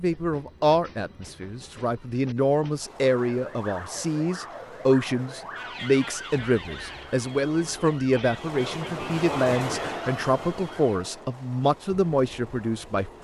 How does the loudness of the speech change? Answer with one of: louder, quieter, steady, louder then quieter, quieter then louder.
steady.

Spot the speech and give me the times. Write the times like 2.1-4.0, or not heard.
0.0-13.1.